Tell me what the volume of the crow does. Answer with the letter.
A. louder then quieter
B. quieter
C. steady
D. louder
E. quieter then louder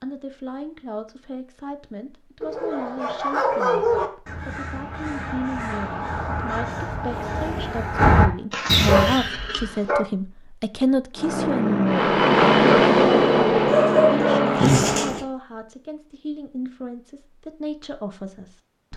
D.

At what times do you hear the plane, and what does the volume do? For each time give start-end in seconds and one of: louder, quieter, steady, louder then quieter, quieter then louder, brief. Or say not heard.
11.2-15.2 louder then quieter.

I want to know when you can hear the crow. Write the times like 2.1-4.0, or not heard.
3.8-9.2.